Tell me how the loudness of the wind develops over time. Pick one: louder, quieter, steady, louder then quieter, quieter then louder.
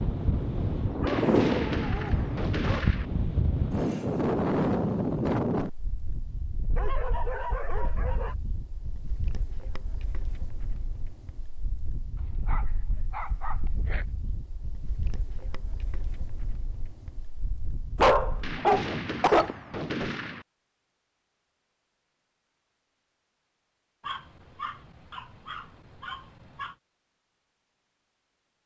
quieter.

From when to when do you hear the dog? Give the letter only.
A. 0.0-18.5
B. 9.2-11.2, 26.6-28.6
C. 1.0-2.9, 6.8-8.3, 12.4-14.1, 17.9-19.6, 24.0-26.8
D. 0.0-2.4
C.